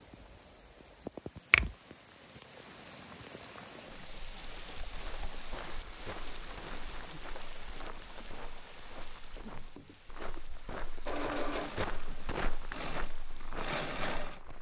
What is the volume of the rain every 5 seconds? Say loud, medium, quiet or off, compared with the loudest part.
loud, loud, medium.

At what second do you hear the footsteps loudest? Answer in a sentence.
The volume of the footsteps peaks at 12 seconds.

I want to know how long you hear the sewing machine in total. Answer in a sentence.
The sewing machine can be heard for 3 seconds in total.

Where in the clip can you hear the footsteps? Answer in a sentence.
The footsteps can be heard from 4.9 to 14.5 s.